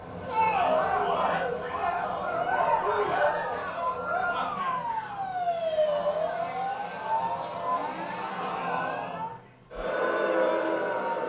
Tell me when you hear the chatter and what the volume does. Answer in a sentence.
You can hear the chatter from 0.1 to 11.2 s, getting quieter then louder.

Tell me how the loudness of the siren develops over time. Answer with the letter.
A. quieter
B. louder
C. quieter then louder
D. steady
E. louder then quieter
E.